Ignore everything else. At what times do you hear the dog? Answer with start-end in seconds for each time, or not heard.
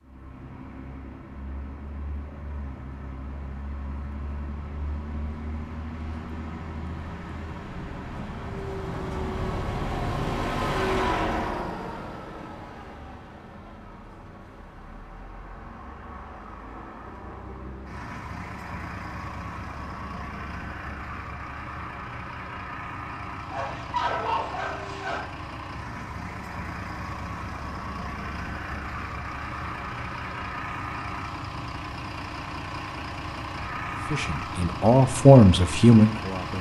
23.5-25.2.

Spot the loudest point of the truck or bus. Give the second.
11 s.